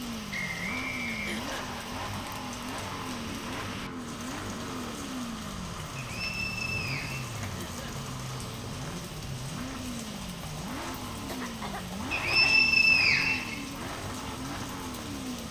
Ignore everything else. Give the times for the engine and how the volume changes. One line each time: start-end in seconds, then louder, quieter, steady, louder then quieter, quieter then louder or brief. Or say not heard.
0.0-15.4 steady.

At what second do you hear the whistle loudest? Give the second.
13 s.